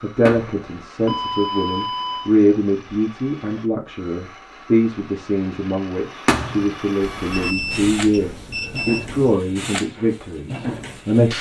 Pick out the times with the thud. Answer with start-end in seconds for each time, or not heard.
0.2-0.7, 6.2-6.7.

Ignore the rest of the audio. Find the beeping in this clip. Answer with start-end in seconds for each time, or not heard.
1.1-2.3, 7.0-9.3.